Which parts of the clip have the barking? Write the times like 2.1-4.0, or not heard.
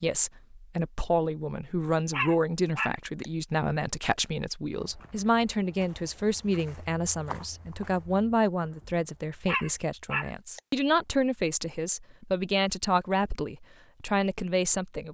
2.1-3.0, 9.4-10.6.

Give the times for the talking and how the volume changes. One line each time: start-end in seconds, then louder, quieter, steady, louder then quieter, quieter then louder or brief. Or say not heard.
0.0-15.1 steady.